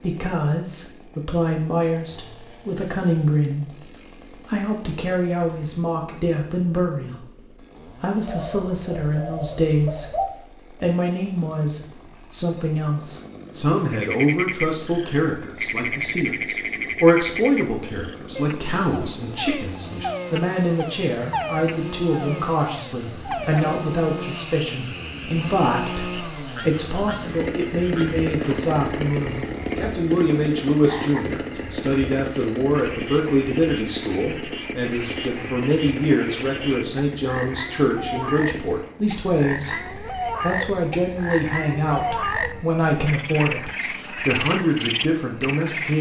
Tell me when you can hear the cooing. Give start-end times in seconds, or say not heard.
8.2-10.3.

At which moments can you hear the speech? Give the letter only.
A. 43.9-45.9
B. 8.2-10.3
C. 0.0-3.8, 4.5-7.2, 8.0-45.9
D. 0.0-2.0
C.